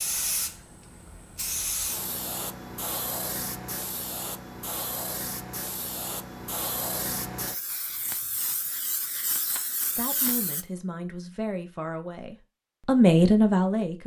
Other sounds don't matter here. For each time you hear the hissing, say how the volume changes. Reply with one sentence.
You can hear the hissing from 0.0 to 10.7 s, at a steady volume.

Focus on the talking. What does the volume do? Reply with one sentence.
The volume of the talking goes up.